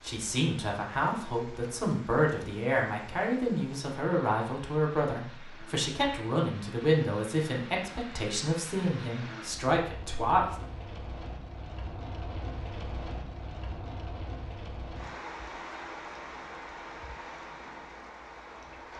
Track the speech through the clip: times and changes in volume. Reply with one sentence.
The speech can be heard from 0.0 to 10.6 s, at a steady volume.